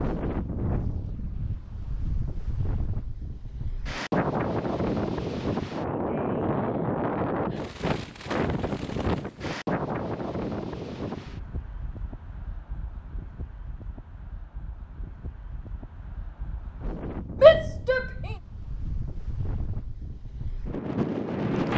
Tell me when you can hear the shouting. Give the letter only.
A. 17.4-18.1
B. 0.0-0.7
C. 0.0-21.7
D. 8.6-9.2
A.